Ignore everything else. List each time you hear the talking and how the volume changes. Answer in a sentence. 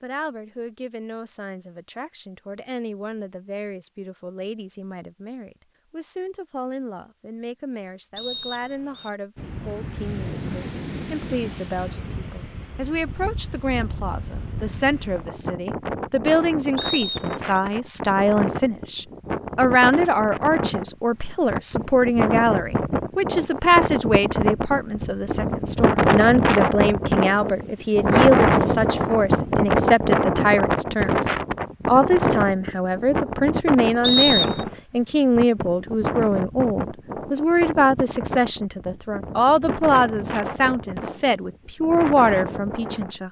The talking can be heard from 0.0 to 43.2 s, getting louder.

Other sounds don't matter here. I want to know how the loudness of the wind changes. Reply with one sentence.
The loudness of the wind goes up, then down.